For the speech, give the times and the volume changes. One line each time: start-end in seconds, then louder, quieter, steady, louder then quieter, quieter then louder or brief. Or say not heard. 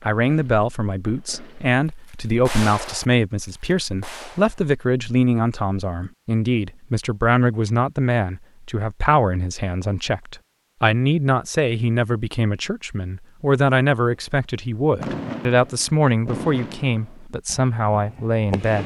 0.1-18.8 steady.